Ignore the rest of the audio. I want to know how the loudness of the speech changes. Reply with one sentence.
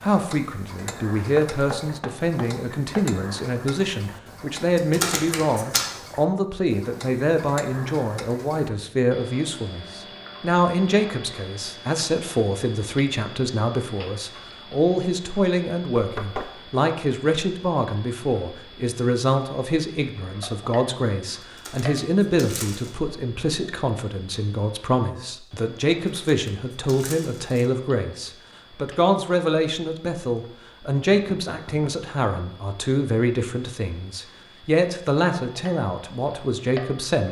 The loudness of the speech stays about the same.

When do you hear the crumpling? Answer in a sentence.
The crumpling can be heard from 4.8 to 5.8 s, from 21.6 to 22.9 s and from 26.1 to 27.6 s.